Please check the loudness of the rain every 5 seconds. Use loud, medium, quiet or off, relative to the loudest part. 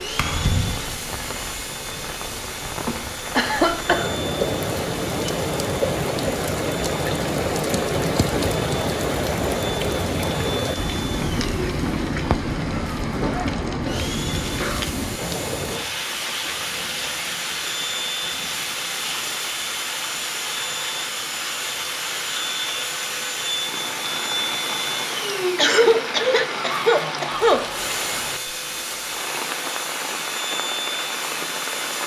medium, loud, loud, medium, medium, medium, medium.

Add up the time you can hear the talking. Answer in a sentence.
The talking can't be heard in this clip.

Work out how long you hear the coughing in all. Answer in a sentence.
You can hear the coughing for 5 seconds altogether.